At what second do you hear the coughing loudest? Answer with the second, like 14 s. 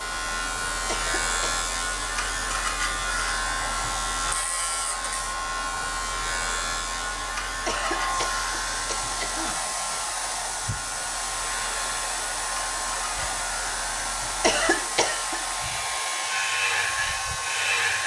15 s.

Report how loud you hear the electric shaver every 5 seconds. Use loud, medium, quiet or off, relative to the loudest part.
loud, loud, medium, loud.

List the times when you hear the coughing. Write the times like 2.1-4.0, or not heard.
0.8-1.6, 7.7-9.6, 14.4-15.4.